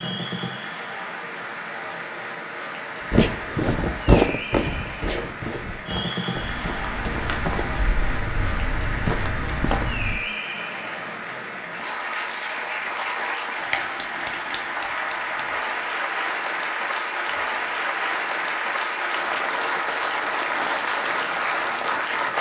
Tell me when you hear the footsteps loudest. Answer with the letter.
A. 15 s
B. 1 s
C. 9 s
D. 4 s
D.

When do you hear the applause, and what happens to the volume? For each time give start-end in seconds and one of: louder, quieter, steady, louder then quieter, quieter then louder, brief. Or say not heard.
0.0-22.3 louder.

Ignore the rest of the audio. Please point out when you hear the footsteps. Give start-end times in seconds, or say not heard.
3.0-10.2.